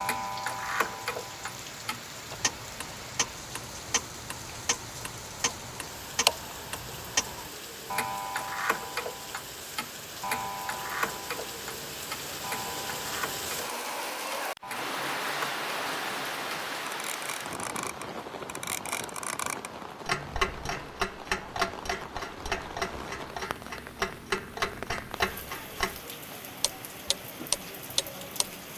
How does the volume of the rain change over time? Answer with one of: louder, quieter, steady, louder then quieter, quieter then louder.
louder then quieter.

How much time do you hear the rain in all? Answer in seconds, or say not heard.
29 s.